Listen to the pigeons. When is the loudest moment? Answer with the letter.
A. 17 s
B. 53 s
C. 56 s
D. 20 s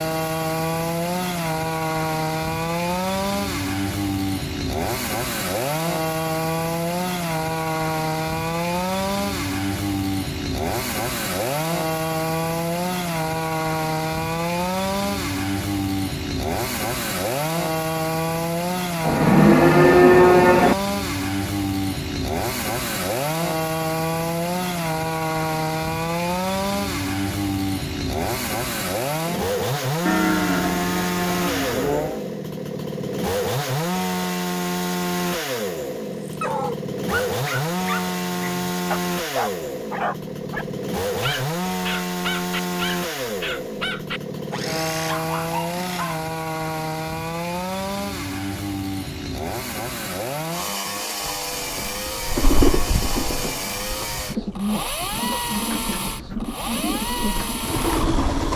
B.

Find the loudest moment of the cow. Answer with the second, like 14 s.
20 s.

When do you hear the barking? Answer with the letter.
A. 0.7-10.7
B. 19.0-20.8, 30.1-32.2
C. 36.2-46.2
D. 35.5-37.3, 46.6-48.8
C.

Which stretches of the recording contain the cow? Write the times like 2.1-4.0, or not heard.
19.0-20.8, 30.1-32.2.